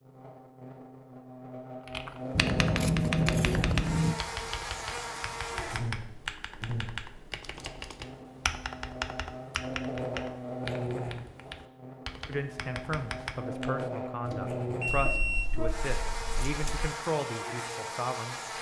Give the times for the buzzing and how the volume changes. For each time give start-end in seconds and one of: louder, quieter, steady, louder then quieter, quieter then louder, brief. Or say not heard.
0.0-18.5 steady.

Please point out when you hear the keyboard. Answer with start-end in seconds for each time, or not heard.
1.9-13.8.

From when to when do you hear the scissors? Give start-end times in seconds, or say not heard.
2.4-4.2, 7.4-8.1, 14.8-16.9.